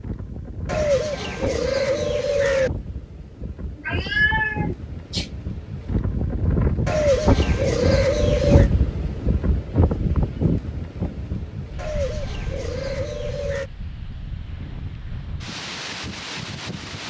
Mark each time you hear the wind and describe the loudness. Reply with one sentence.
The wind can be heard from 0.0 to 17.0 s, getting louder then quieter.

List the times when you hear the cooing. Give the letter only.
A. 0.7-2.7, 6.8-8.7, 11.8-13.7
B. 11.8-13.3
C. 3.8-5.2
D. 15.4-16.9
A.